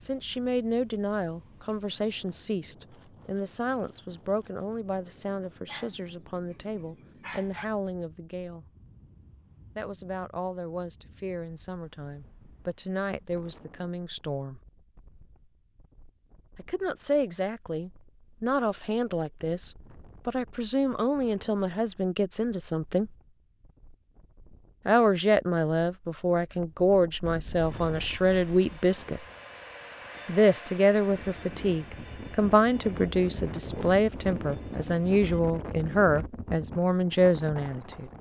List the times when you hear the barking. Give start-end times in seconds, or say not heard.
5.7-7.7.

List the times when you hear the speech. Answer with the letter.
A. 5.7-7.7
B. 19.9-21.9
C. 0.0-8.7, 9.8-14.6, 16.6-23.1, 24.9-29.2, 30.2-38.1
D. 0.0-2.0
C.